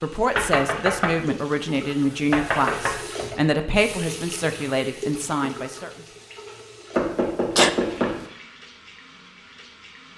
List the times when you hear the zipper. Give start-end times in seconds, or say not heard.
not heard.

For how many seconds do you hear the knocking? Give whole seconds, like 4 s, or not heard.
3 s.